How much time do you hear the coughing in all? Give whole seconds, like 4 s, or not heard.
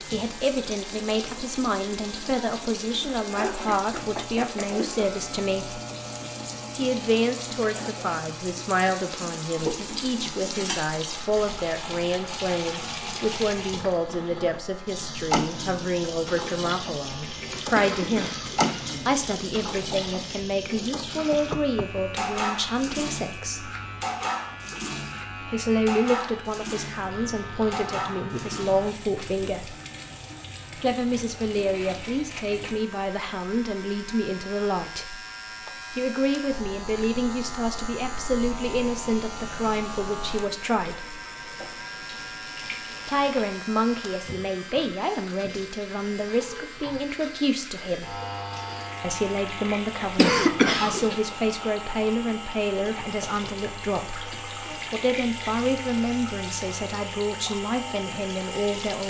2 s.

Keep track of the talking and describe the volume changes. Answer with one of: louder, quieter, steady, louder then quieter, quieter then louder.
steady.